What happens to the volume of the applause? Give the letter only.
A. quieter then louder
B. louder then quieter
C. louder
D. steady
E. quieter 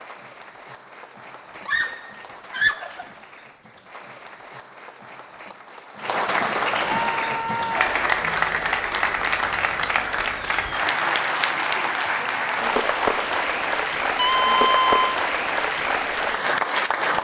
C.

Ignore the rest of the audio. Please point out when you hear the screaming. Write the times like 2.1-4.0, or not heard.
1.6-3.0, 6.8-7.9, 14.2-15.2.